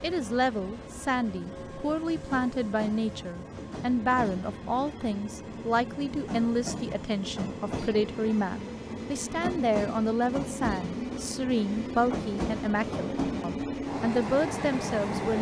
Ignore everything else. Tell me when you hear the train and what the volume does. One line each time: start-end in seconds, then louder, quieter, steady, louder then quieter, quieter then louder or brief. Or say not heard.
0.0-15.3 louder.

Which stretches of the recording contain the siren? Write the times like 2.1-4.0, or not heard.
not heard.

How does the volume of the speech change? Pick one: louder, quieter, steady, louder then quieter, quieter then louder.
steady.